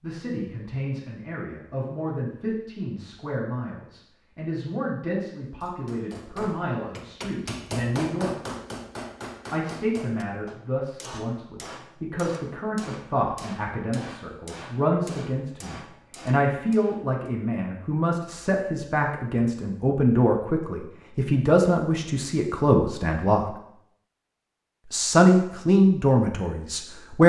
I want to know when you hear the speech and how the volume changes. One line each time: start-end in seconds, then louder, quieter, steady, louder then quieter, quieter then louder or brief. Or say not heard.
0.0-8.3 steady
9.5-23.6 louder
24.9-27.2 brief.